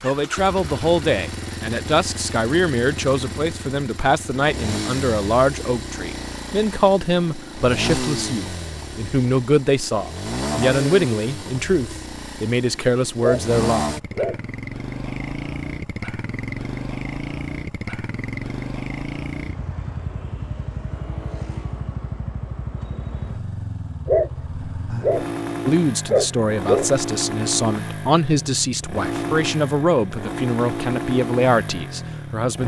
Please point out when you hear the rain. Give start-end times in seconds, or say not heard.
not heard.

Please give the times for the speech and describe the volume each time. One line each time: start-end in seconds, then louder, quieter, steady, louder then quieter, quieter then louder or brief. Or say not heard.
0.0-13.9 steady
25.6-32.6 steady.